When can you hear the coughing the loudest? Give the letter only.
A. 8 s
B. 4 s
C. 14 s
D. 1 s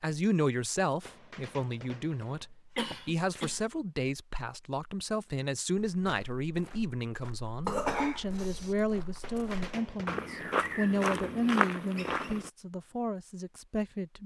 A.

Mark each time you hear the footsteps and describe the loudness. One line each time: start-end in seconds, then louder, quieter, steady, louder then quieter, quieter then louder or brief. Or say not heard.
5.8-12.5 louder.